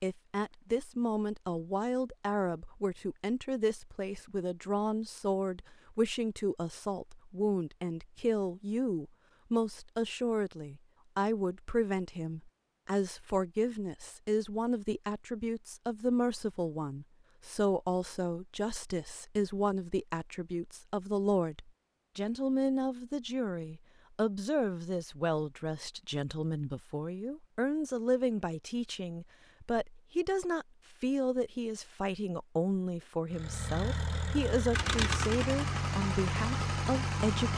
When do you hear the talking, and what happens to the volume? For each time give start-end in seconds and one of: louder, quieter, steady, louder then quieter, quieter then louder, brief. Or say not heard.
0.0-37.5 steady.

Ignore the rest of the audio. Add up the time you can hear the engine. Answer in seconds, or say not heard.
4 s.